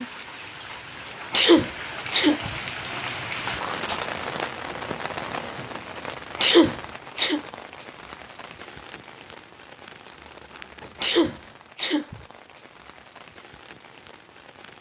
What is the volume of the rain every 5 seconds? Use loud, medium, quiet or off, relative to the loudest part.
loud, medium, quiet.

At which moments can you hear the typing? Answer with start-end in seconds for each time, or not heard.
not heard.